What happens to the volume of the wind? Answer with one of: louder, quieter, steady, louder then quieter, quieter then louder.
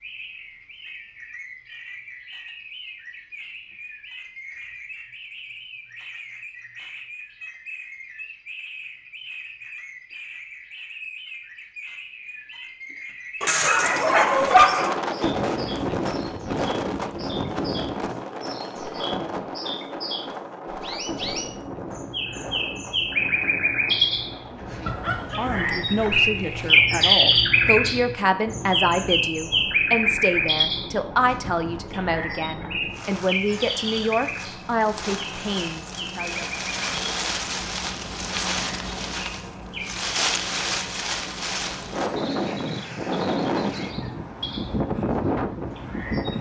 quieter then louder.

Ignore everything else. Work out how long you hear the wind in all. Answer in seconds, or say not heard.
33 s.